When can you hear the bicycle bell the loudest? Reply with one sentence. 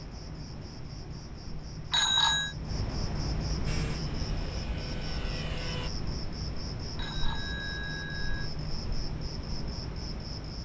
The loudest moment of the bicycle bell is at 2 seconds.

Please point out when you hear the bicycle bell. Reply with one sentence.
The bicycle bell can be heard from 1.9 to 2.5 s and from 7.0 to 8.5 s.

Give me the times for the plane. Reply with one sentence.
You can hear the plane from 3.6 to 5.9 s.